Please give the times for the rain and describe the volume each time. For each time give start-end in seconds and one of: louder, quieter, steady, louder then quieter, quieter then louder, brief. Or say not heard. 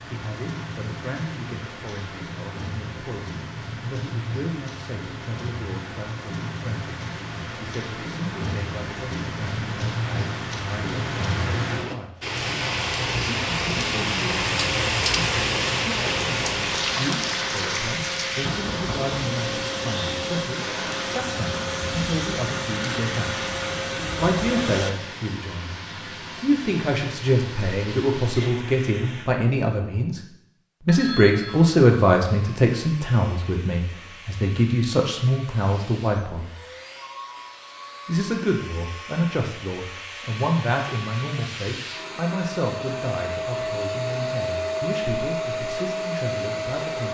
0.0-29.3 louder then quieter.